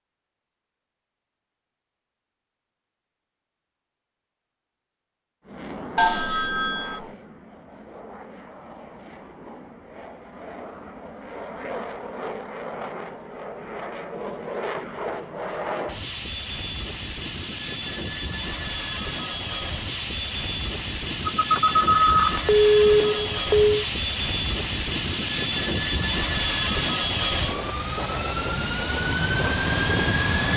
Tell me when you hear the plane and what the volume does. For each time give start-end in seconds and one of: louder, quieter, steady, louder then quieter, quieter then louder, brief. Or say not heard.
5.4-30.5 louder.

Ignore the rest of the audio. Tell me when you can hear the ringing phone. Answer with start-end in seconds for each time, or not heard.
6.0-7.0, 21.2-23.8.